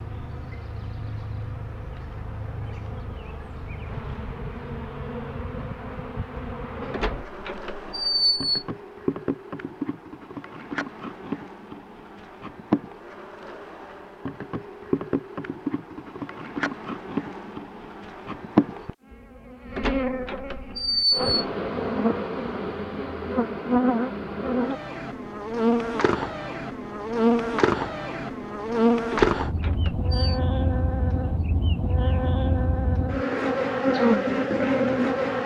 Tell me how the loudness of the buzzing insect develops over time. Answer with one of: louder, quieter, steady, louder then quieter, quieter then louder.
louder.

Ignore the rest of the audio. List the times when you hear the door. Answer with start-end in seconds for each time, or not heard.
6.9-8.5, 19.8-21.3, 29.1-30.4.